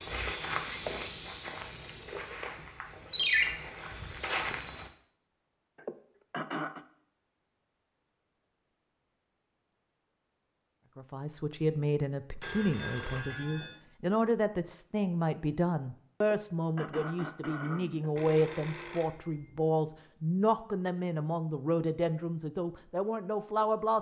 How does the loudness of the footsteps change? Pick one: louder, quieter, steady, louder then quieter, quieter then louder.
quieter then louder.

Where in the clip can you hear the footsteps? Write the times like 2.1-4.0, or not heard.
0.0-4.9.